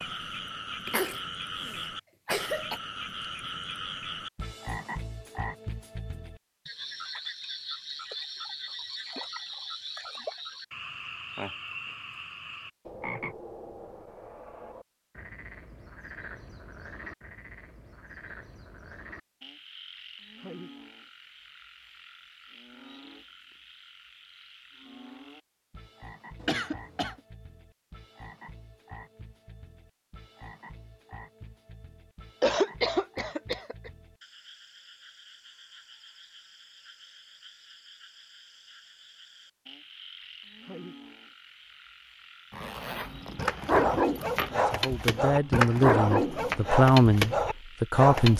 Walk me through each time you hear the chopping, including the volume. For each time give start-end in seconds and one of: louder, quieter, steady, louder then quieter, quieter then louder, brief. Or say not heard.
not heard.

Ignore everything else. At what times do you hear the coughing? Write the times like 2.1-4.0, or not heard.
0.8-2.8, 26.4-27.1, 32.4-33.9.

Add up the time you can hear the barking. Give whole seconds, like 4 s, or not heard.
5 s.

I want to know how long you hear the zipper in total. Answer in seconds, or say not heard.
2 s.